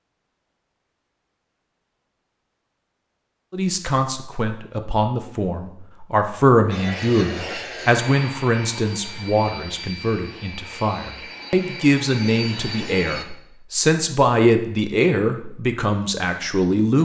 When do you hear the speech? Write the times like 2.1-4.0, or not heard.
3.5-16.9.